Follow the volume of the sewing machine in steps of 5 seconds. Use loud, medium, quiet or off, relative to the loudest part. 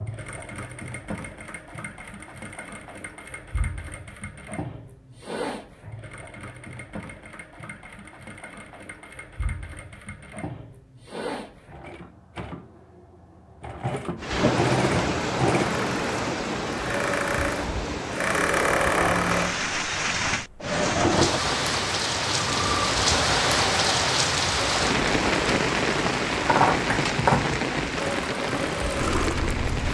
quiet, quiet, medium, loud, loud, loud.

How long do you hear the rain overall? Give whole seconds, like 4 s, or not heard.
16 s.